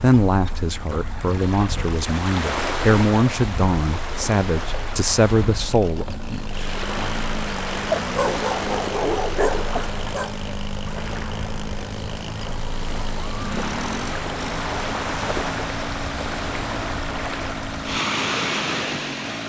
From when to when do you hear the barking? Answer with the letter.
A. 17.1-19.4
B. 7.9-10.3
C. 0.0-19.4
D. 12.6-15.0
B.